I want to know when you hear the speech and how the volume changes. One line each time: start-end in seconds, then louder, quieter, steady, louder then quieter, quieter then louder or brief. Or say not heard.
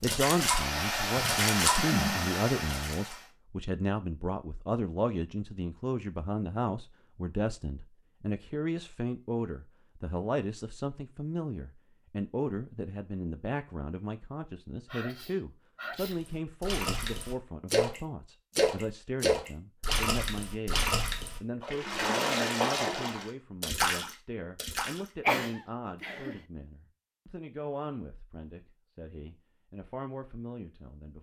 0.0-31.1 quieter.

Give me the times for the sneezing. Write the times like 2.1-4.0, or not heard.
1.1-2.2, 14.9-16.2, 25.2-26.4.